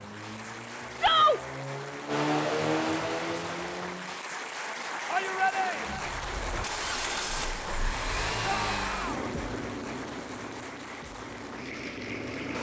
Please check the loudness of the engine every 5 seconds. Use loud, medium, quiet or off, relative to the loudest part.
loud, loud, medium.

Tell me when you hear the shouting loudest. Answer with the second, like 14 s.
1 s.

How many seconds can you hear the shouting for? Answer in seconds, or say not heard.
2 s.